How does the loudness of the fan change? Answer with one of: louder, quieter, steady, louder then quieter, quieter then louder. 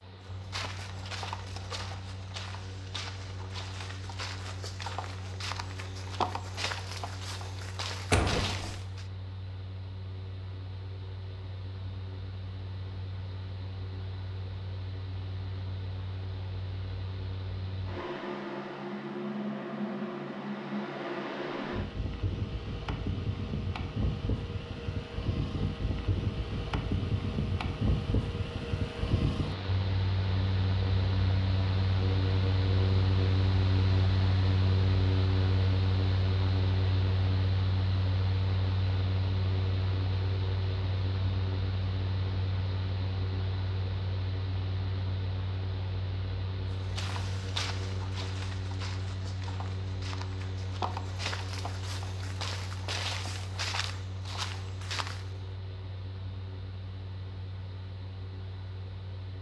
louder then quieter.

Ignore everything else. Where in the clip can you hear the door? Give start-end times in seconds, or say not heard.
8.1-8.8.